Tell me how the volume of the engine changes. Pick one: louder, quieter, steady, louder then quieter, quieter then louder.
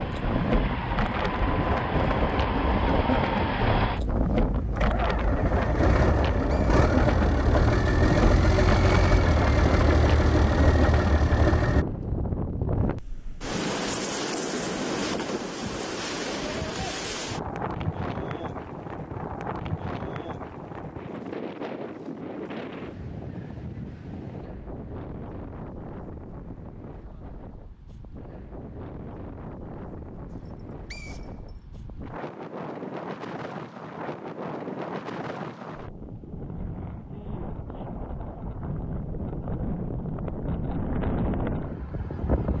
louder.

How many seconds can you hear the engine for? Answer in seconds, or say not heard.
12 s.